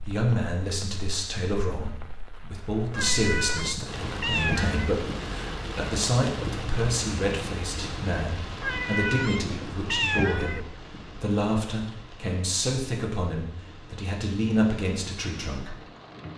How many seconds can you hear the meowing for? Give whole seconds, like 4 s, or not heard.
4 s.